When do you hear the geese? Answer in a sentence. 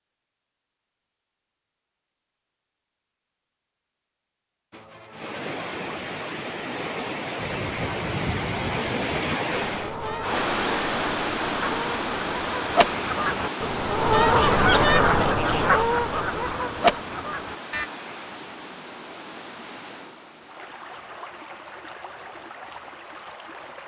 The geese can be heard from 7.4 to 17.9 s.